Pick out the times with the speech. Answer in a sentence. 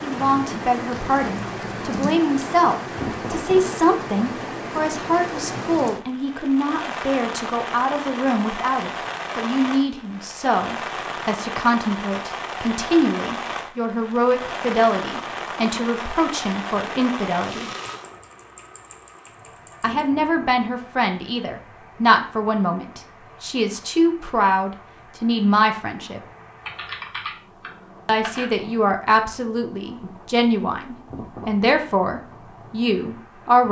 The speech can be heard from 0.0 to 17.6 s, from 19.8 to 26.2 s and from 28.1 to 33.6 s.